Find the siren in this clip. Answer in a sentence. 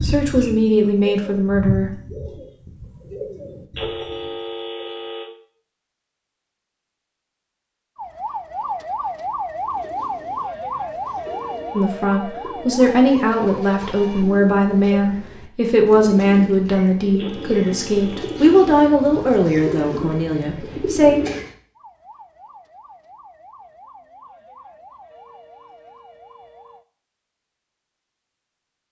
The siren can be heard from 8.0 to 14.3 s and from 21.8 to 26.9 s.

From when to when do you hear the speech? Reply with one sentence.
The speech can be heard from 0.0 to 1.9 s and from 11.7 to 21.2 s.